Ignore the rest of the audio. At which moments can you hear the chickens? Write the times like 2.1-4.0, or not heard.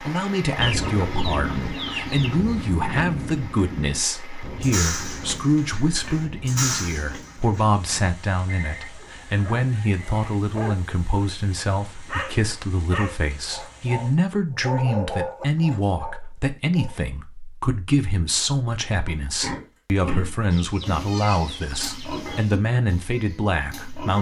0.6-2.4, 20.5-22.6.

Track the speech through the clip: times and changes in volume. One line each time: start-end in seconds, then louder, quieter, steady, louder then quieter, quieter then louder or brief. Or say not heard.
0.0-24.1 steady.